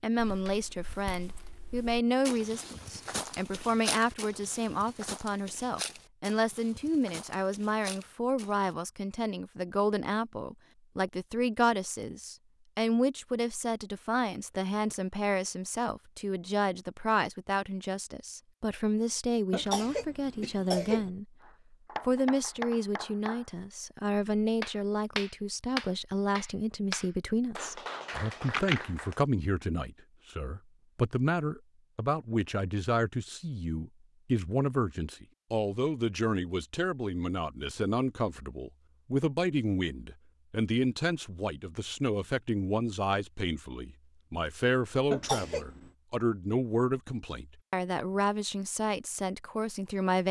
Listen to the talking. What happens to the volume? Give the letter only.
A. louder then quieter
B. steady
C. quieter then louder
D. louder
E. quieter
B.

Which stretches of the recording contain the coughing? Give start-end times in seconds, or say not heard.
19.5-21.1, 45.1-45.9.